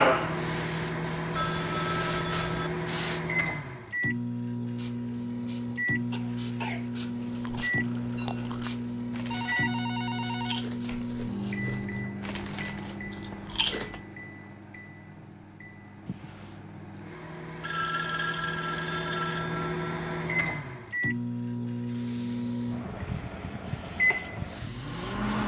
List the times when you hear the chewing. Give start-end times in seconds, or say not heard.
7.2-14.0.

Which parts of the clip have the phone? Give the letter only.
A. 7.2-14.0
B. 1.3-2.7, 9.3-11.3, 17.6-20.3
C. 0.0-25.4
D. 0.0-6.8
B.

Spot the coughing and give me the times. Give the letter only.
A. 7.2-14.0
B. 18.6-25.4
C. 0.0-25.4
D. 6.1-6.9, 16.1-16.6
D.